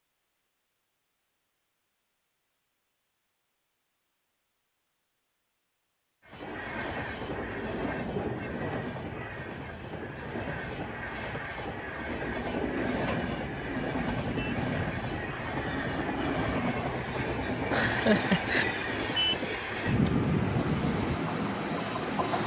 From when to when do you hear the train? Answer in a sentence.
You can hear the train from 6.2 to 22.4 s.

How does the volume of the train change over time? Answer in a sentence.
The volume of the train goes up.